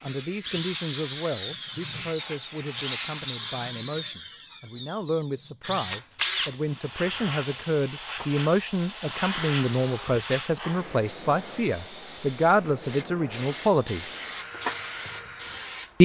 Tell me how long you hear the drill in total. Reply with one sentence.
The drill can be heard for 16 seconds in total.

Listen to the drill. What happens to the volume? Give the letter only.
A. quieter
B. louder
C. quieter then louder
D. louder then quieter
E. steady
A.